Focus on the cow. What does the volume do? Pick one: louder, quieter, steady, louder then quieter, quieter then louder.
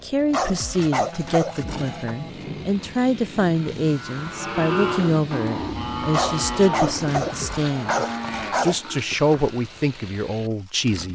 quieter.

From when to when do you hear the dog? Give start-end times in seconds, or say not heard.
0.3-2.1, 6.1-8.8.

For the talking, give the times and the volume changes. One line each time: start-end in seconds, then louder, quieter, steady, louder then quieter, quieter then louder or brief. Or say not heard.
0.0-11.1 steady.